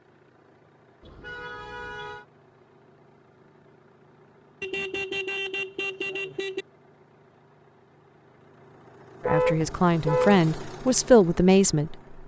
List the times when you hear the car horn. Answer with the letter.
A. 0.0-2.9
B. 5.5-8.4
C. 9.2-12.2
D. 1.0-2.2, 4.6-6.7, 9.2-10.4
D.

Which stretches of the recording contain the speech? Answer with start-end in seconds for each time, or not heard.
9.2-12.2.